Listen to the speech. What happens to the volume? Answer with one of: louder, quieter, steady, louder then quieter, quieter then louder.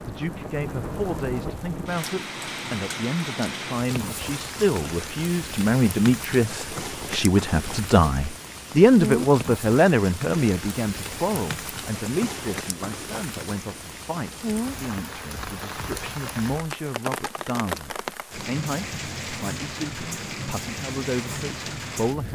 louder then quieter.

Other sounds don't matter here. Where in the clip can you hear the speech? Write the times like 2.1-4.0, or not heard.
0.1-22.3.